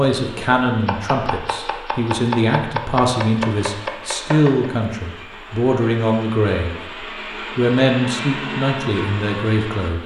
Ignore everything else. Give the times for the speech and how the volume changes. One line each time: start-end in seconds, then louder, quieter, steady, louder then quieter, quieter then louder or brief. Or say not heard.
0.0-10.0 steady.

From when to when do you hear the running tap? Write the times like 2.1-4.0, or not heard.
not heard.